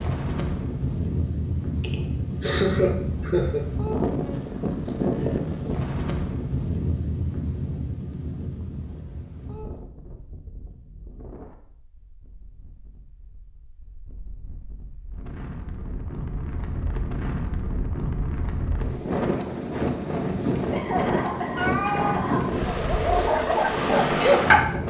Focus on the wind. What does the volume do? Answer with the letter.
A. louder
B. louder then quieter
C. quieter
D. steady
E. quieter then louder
E.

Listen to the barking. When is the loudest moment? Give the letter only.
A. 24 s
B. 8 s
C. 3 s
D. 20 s
A.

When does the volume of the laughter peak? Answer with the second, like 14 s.
3 s.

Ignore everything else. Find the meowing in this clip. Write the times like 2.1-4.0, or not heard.
21.6-22.2.